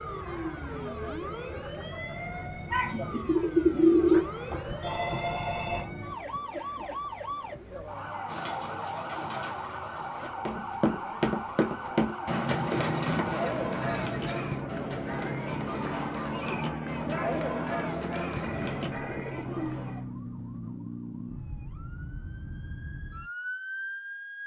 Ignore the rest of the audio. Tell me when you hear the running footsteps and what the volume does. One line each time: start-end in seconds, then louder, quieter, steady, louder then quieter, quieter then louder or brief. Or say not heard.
10.4-19.1 quieter.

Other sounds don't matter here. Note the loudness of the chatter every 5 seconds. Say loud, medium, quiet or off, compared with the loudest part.
medium, medium, loud, loud, off.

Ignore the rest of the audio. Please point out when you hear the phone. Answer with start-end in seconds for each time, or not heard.
4.1-5.9, 18.4-20.1.